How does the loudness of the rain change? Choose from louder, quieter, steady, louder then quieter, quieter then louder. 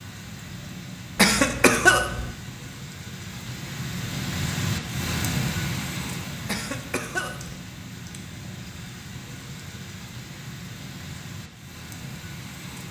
louder then quieter.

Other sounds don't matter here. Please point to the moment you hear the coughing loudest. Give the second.
2 s.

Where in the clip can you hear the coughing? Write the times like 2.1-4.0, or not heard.
1.1-2.3, 6.5-7.6.